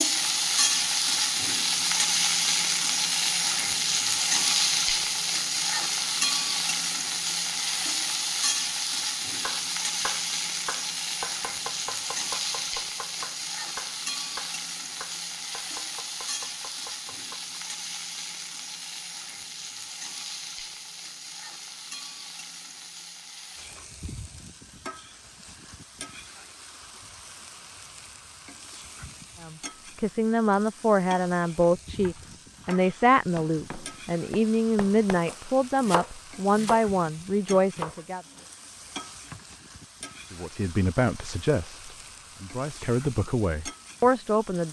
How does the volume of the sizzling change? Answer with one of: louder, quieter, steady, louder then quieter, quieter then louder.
quieter.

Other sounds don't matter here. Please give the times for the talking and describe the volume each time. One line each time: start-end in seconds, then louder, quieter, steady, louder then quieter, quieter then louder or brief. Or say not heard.
29.4-38.2 steady
40.3-44.6 quieter then louder.